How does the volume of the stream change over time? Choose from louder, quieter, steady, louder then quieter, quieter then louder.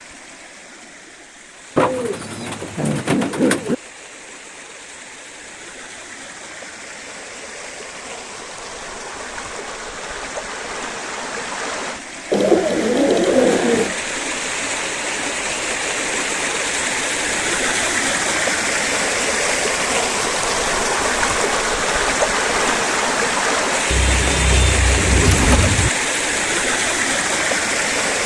louder.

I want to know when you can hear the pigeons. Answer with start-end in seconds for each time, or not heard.
1.8-3.8, 12.3-13.9, 23.9-25.9.